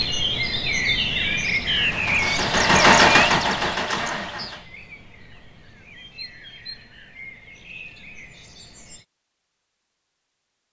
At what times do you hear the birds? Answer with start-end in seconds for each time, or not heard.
0.0-9.1.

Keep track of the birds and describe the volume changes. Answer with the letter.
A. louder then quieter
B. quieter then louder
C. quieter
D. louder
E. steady
C.